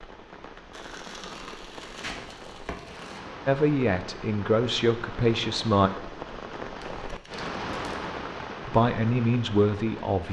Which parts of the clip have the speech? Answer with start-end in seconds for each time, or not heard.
3.5-5.9, 8.7-10.2.